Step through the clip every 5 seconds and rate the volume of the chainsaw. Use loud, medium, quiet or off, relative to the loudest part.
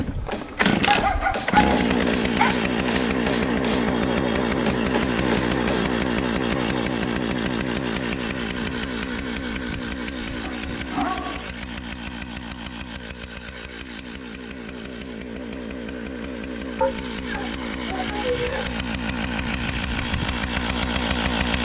loud, loud, medium, medium, loud.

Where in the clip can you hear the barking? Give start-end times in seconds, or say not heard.
0.8-2.6, 10.4-11.5, 16.8-18.8.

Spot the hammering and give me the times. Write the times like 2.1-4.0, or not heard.
0.1-6.0.